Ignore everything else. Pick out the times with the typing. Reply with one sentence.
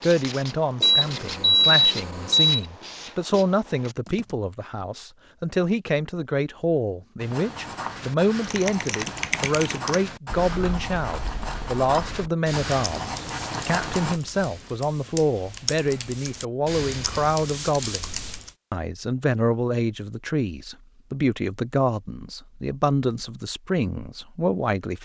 The typing can be heard from 8.4 to 18.6 s.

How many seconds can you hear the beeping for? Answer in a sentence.
You can hear the beeping for 2 seconds altogether.